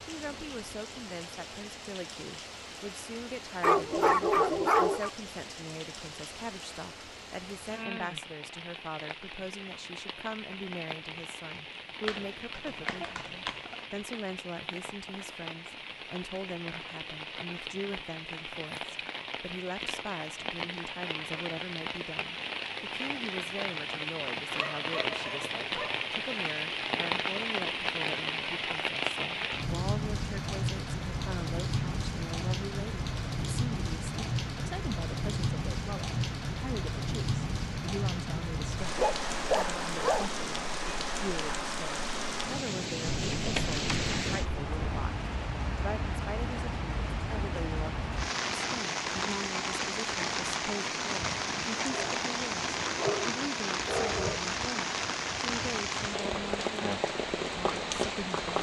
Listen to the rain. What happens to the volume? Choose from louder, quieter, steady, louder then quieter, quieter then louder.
louder.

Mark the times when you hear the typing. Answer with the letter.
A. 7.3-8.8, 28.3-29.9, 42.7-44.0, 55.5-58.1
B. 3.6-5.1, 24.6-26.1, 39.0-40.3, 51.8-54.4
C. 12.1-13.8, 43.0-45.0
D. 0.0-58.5
C.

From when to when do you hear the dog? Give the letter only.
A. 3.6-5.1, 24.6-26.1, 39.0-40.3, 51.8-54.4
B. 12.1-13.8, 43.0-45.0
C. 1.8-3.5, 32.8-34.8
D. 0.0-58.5
A.